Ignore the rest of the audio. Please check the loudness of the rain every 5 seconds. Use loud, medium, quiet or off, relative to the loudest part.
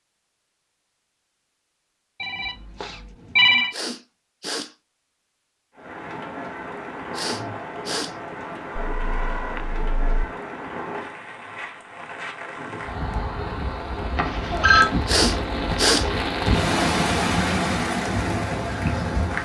off, medium, medium, loud.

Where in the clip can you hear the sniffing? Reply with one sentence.
You can hear the sniffing from 3.7 to 4.8 s, from 7.1 to 8.2 s and from 15.1 to 16.1 s.